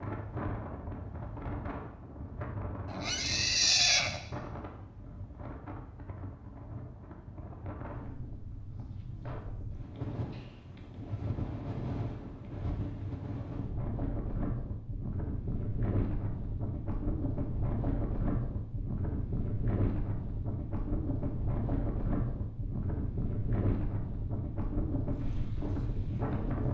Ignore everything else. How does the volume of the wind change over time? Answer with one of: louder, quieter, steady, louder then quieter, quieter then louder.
louder.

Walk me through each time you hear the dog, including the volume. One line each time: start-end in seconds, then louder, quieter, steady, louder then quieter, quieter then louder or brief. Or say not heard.
not heard.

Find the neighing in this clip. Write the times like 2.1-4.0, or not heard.
2.9-4.2.